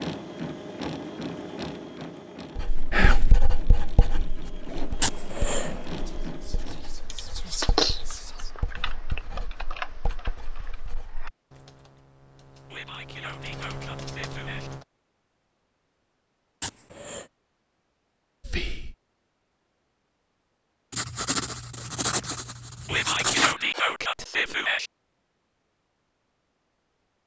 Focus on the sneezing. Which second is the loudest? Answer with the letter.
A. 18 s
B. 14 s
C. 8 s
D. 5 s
D.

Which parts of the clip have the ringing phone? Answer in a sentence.
The ringing phone can't be heard in this clip.